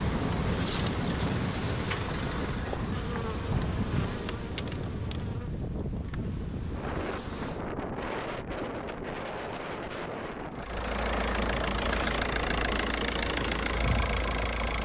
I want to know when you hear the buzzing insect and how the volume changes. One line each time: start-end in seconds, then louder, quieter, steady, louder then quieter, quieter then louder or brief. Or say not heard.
0.0-7.7 quieter.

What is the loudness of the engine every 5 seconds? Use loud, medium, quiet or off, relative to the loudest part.
loud, off, loud.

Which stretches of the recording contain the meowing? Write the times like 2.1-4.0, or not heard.
not heard.